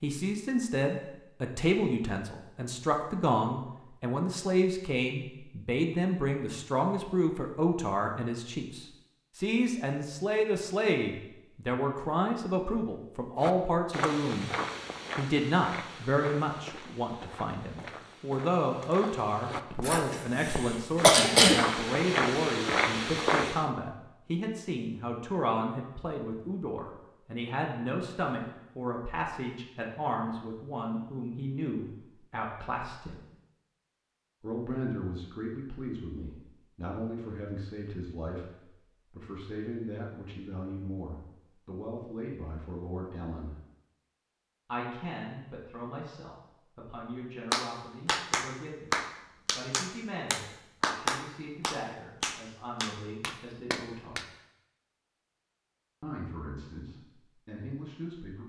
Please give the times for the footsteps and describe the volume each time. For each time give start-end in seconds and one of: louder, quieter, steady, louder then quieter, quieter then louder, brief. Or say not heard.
13.4-23.6 quieter then louder.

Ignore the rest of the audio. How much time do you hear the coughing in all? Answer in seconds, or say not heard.
2 s.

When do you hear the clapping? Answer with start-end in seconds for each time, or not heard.
47.5-54.2.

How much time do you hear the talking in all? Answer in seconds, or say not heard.
54 s.